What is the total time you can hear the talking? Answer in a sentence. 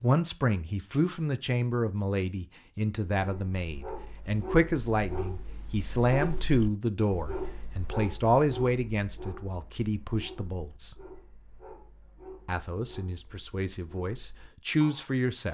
You can hear the talking for 14 seconds altogether.